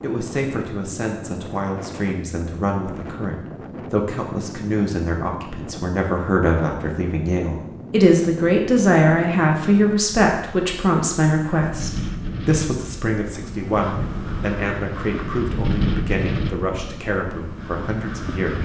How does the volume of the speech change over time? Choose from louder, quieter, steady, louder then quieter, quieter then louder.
louder then quieter.